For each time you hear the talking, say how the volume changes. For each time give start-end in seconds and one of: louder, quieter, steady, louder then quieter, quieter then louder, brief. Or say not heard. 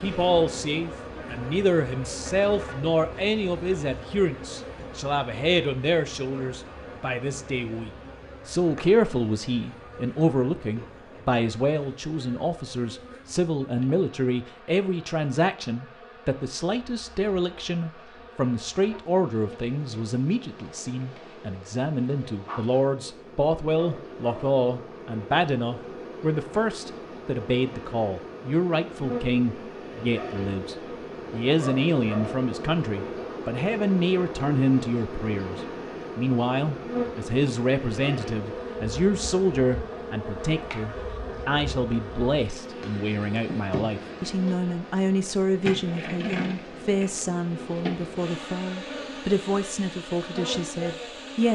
0.0-51.4 steady.